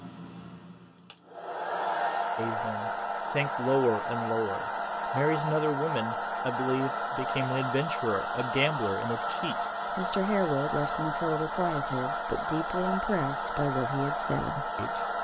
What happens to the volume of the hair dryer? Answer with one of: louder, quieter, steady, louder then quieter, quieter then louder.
steady.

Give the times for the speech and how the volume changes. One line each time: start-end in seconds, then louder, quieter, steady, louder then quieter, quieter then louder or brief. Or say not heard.
2.4-15.1 steady.